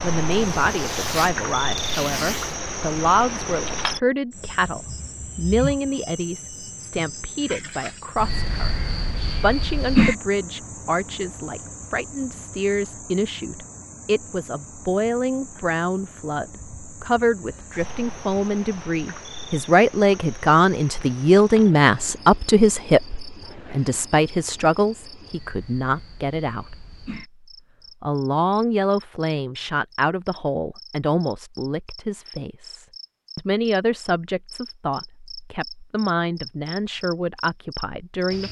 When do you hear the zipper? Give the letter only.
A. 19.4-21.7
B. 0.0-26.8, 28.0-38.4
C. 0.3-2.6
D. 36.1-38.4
C.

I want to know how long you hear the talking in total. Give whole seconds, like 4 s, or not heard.
37 s.